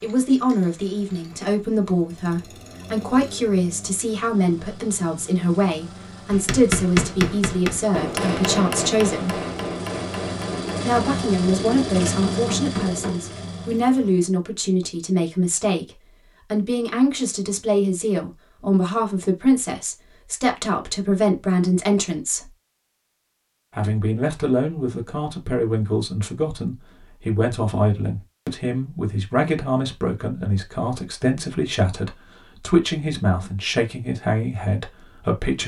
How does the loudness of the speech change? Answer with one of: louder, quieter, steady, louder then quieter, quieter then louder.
steady.